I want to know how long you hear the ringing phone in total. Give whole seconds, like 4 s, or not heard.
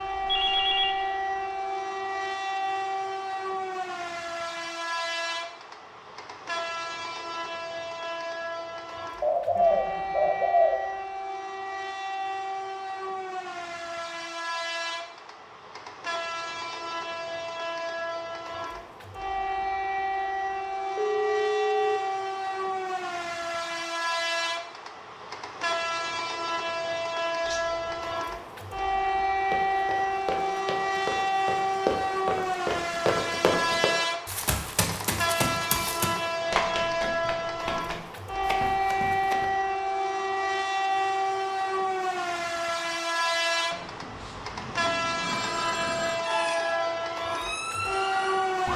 4 s.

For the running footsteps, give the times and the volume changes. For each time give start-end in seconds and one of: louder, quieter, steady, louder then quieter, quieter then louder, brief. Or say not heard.
29.4-39.5 louder then quieter.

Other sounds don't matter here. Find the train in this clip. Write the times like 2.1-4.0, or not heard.
0.0-48.7.